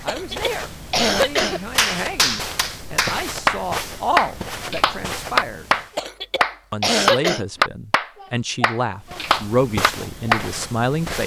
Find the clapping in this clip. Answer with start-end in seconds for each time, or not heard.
1.4-10.4.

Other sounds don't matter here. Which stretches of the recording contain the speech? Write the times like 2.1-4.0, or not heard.
0.0-5.7, 6.7-11.2.